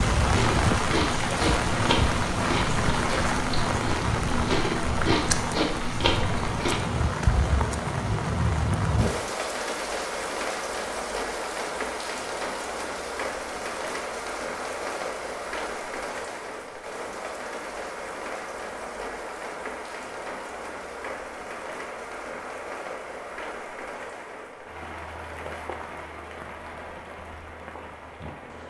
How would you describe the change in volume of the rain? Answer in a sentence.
The volume of the rain goes down.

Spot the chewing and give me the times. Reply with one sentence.
You can hear the chewing from 0.1 to 6.8 s.